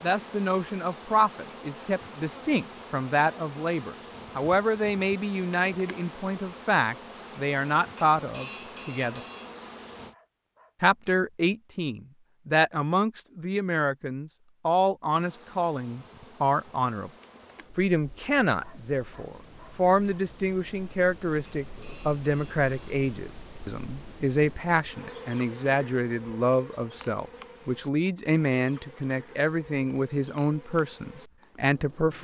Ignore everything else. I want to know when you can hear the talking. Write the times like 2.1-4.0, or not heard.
0.0-9.2, 10.8-17.1, 17.8-32.2.